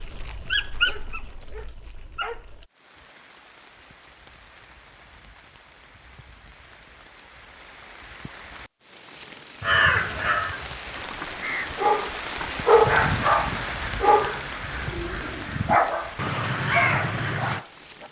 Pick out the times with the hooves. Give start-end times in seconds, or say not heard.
not heard.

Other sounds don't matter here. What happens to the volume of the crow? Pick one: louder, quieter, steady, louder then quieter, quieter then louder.
quieter then louder.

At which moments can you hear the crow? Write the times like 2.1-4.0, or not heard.
9.6-17.6.